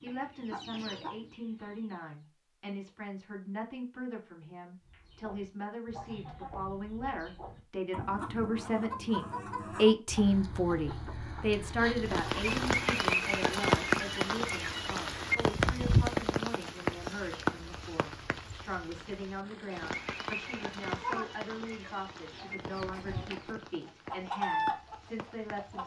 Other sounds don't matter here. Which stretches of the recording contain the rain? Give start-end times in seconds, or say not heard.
12.0-25.8.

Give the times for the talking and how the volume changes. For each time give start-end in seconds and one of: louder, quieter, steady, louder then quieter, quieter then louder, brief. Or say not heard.
0.0-25.8 louder then quieter.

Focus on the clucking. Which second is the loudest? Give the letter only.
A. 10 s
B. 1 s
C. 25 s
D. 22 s
C.